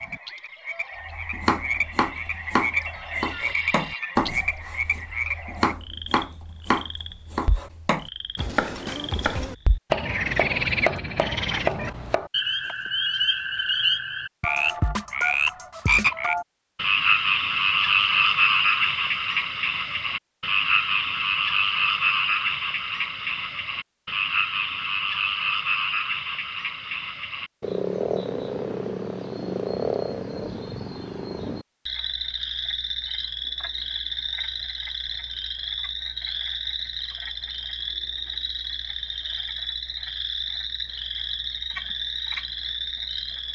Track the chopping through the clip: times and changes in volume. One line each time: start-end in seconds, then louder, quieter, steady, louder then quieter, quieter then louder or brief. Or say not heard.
1.1-12.8 steady.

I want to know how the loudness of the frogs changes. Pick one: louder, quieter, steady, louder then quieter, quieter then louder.
louder then quieter.